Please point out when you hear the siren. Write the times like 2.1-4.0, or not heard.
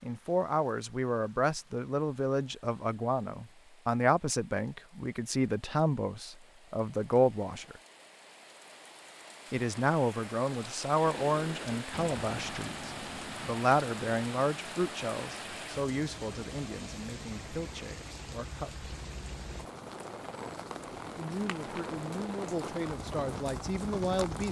not heard.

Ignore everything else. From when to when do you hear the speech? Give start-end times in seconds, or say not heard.
0.0-7.8, 9.5-18.9, 21.1-24.4.